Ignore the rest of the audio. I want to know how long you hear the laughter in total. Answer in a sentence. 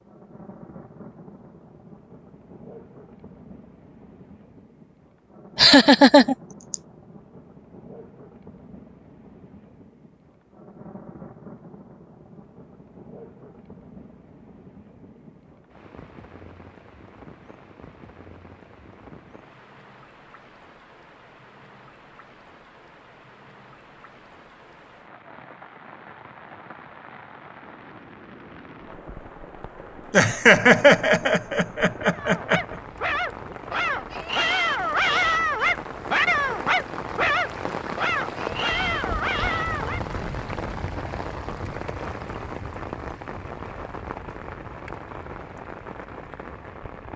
You can hear the laughter for 4 seconds altogether.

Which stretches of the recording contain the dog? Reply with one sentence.
The dog can be heard from 32.1 to 40.0 s.